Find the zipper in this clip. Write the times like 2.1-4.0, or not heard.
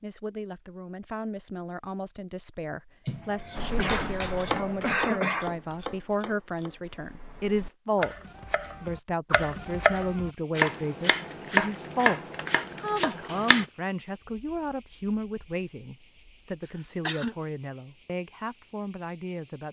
3.0-5.0.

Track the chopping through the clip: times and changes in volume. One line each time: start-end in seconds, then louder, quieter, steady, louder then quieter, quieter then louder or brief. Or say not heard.
3.5-13.7 quieter then louder.